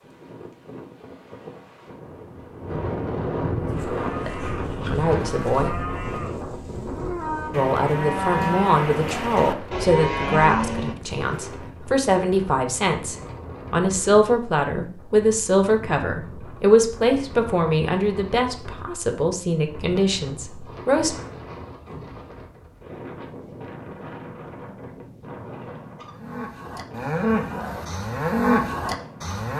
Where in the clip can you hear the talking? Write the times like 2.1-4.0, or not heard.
4.2-5.8, 7.5-21.1.